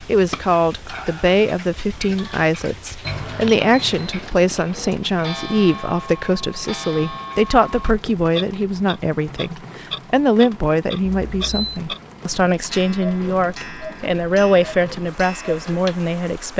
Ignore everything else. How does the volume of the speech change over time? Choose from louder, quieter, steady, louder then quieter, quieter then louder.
steady.